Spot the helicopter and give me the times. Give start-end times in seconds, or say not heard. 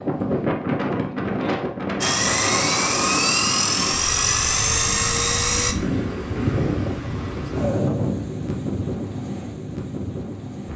2.0-5.8.